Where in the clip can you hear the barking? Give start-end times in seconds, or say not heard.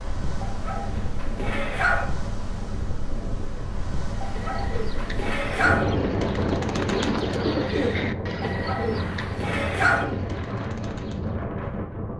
0.4-2.0, 4.2-5.8, 8.4-10.1.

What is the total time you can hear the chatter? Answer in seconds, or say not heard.
not heard.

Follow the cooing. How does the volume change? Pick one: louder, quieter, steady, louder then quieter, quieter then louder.
louder then quieter.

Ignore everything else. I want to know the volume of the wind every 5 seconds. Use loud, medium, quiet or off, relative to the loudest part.
medium, loud, loud.